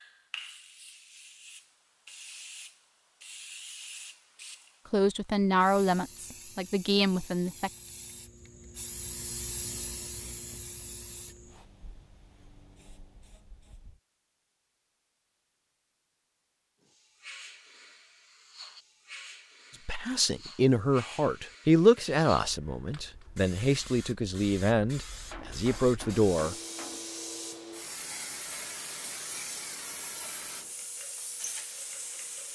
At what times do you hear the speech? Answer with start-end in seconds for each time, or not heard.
4.9-7.7, 19.9-26.6.